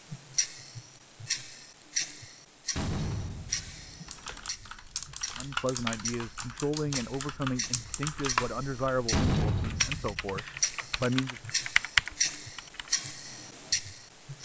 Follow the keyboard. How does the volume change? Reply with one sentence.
The volume of the keyboard goes up.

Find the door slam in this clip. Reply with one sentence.
You can hear the door slam from 2.8 to 4.0 s and from 9.1 to 10.3 s.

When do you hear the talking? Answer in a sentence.
The talking can be heard from 5.3 to 11.4 s.